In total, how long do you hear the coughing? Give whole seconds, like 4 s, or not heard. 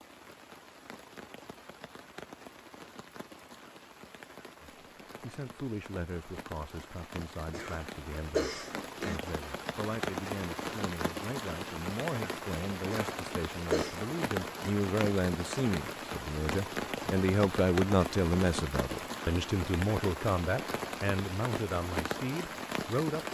3 s.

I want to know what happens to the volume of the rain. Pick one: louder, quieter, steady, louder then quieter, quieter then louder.
louder.